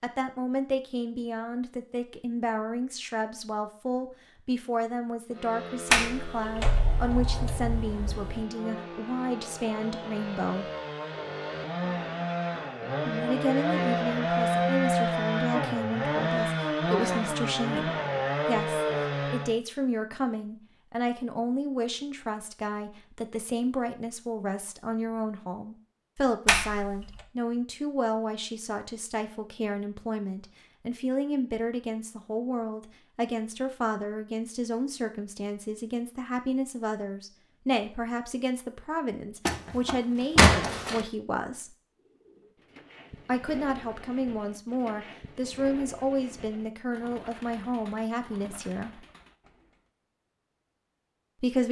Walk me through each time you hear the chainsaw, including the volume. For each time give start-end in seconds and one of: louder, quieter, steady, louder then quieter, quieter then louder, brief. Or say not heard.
5.3-19.6 louder.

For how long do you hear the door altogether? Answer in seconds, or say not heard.
5 s.